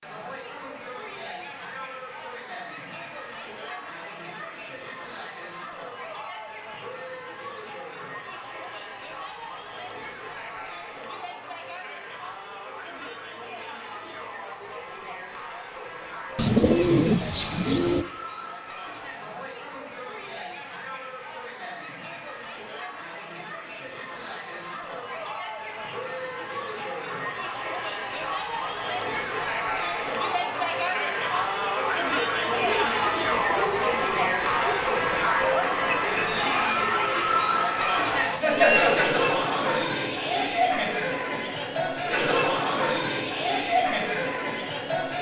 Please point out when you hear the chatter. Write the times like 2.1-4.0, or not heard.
0.0-45.1.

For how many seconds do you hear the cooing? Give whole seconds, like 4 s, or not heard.
4 s.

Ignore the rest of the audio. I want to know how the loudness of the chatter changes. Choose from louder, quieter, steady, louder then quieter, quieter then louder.
louder.